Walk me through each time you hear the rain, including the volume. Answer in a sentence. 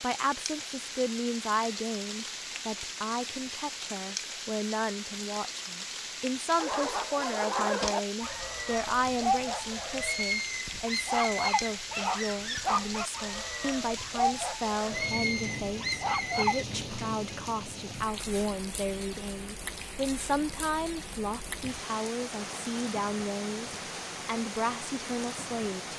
The rain can be heard from 0.0 to 25.9 s, at a steady volume.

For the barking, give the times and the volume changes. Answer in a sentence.
The barking can be heard from 6.5 to 16.6 s, at a steady volume.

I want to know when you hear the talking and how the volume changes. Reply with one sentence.
You can hear the talking from 0.0 to 25.9 s, at a steady volume.